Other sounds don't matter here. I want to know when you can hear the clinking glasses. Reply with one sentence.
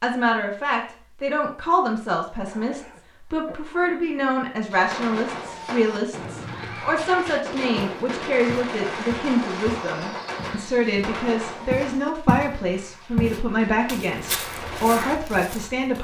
The clinking glasses can't be heard in this clip.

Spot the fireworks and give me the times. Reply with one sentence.
The fireworks can be heard from 4.7 to 15.2 s.